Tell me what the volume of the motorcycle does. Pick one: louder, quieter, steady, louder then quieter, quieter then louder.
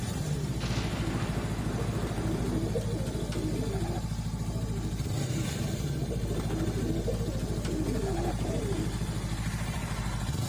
steady.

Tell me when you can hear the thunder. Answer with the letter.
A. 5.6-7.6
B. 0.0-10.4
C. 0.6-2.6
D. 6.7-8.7
C.